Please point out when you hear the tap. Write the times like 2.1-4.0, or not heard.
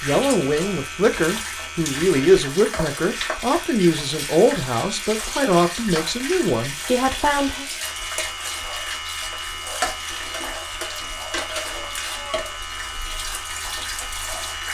0.0-14.6.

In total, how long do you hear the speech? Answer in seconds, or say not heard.
8 s.